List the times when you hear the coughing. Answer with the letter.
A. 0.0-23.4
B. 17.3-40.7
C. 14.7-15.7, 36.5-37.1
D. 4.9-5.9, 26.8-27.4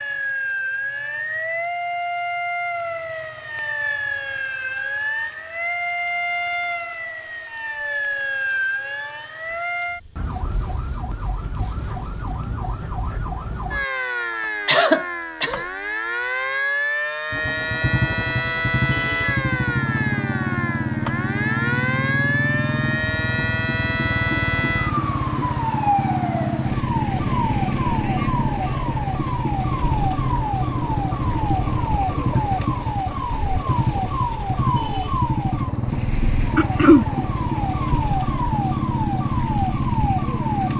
C.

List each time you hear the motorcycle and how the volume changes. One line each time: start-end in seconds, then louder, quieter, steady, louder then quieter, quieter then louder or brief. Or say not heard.
17.3-40.7 steady.